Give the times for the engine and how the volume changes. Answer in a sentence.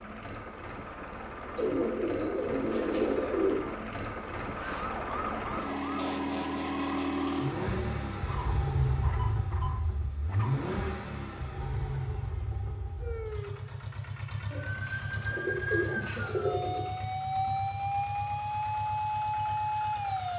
The engine can be heard from 0.0 to 20.3 s, getting louder then quieter.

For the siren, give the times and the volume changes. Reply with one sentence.
You can hear the siren briefly from 4.5 to 7.2 s; and from 13.0 to 20.3 s, getting louder.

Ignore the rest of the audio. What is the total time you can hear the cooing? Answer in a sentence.
You can hear the cooing for 4 seconds altogether.